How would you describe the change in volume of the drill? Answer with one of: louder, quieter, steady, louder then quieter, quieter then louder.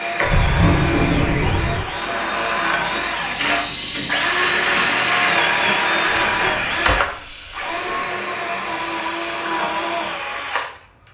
louder then quieter.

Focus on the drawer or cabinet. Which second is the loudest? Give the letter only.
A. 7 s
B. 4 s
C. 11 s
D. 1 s
D.